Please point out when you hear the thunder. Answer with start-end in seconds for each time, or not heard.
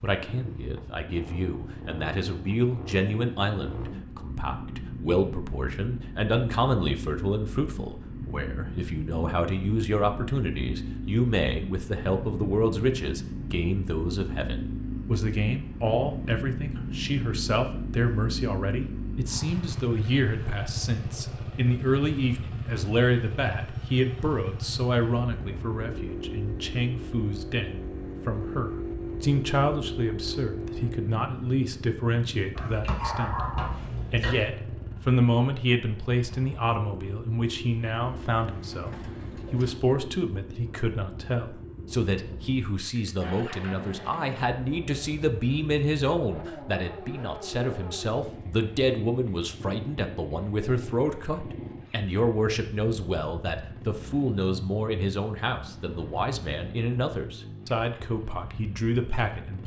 not heard.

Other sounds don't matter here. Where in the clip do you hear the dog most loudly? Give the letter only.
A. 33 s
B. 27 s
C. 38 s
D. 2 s
A.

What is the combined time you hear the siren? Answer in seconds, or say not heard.
not heard.